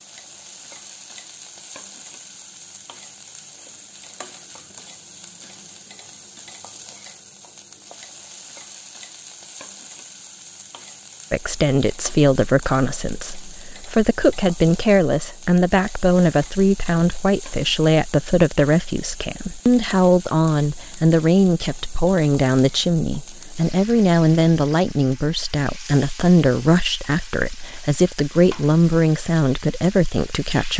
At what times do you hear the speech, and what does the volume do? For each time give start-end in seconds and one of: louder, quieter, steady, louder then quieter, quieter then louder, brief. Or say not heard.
11.3-30.7 steady.